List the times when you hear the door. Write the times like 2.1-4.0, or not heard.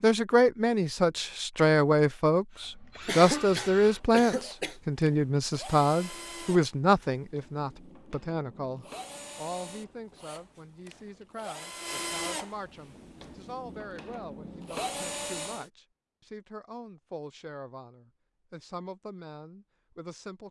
not heard.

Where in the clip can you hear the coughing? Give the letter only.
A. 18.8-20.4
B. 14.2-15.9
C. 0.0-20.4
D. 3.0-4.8
D.